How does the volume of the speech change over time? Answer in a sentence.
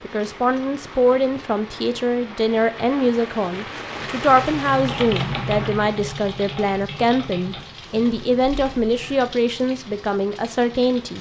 The volume of the speech stays about the same.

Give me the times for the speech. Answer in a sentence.
The speech can be heard from 0.0 to 11.1 s.